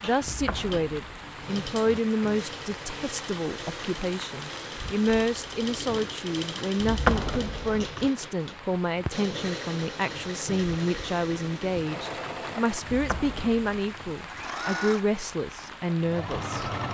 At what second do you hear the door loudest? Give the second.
7 s.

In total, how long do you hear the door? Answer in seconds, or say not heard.
4 s.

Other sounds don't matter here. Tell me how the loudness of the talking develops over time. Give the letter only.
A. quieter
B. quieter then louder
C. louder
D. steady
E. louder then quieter
D.